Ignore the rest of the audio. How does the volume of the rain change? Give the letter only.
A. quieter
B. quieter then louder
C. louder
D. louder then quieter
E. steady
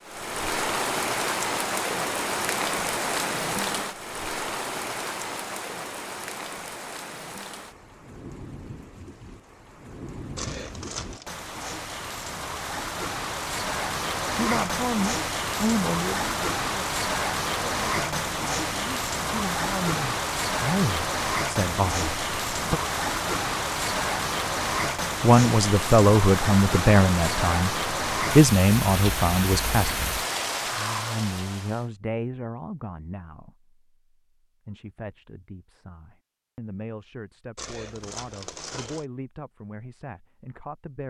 B.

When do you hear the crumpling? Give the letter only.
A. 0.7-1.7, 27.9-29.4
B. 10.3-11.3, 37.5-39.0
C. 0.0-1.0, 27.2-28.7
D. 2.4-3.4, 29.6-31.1
B.